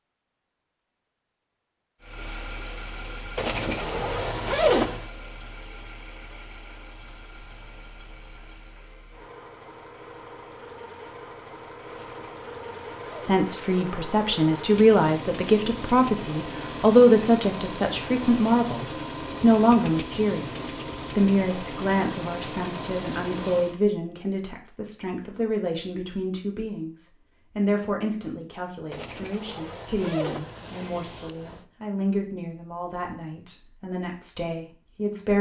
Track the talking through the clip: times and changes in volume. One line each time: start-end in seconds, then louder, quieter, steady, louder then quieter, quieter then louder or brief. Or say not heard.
13.2-35.3 quieter.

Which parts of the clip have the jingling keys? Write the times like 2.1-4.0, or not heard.
7.0-8.7.